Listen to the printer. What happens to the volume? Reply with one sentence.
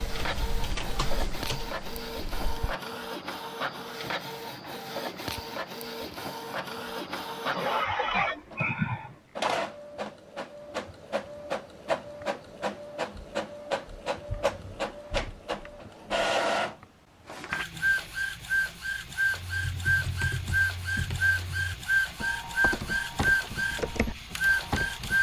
The loudness of the printer goes up.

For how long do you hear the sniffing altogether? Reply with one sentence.
The sniffing can be heard for 2 seconds in total.